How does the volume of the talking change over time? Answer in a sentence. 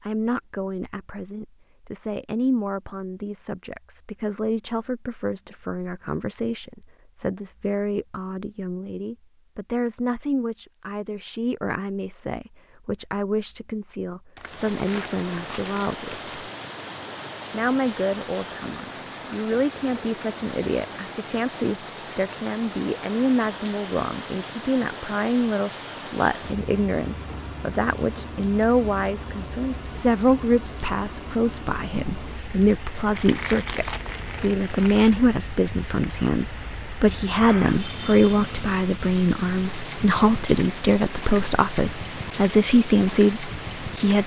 The loudness of the talking goes up.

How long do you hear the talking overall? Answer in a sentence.
The talking can be heard for 43 seconds in total.